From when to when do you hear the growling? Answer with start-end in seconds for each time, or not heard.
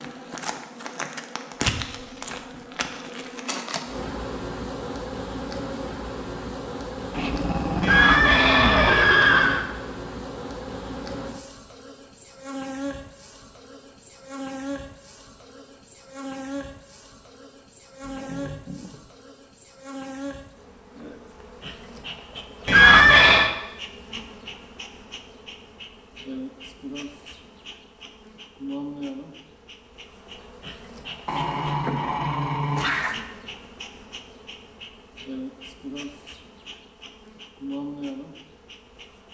7.1-9.1, 18.0-19.1, 31.2-33.2.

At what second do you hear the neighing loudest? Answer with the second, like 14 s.
23 s.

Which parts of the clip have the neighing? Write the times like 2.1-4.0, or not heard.
7.8-9.7, 22.6-23.5.